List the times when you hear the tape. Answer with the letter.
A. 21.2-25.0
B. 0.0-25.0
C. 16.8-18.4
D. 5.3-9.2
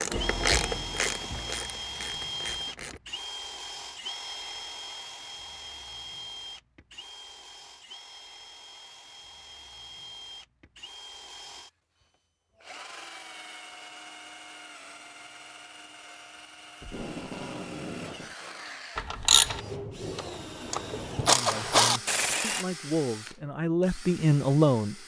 C.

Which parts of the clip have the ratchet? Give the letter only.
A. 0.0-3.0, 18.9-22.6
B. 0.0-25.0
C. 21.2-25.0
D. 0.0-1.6
A.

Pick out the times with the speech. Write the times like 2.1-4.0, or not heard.
21.2-25.0.